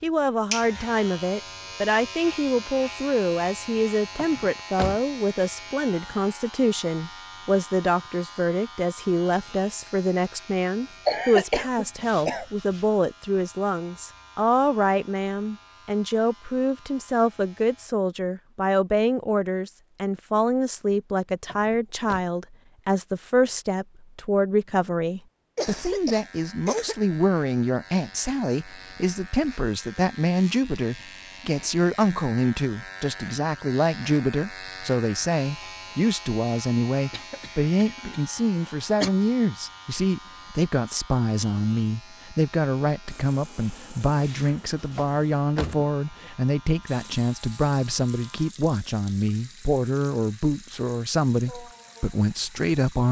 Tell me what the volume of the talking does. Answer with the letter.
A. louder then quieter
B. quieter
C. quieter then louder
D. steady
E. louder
D.